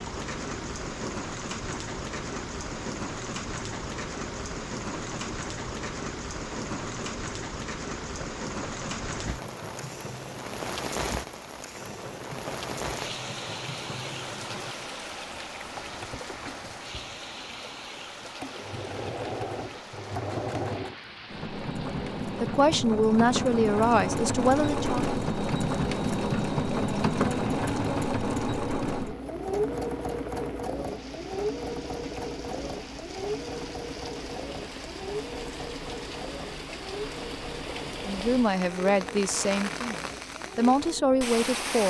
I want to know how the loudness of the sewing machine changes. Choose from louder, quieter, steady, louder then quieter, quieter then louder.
louder then quieter.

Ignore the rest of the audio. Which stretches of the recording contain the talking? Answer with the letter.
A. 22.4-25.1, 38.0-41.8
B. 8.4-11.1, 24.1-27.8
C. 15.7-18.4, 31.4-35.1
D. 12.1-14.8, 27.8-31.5
A.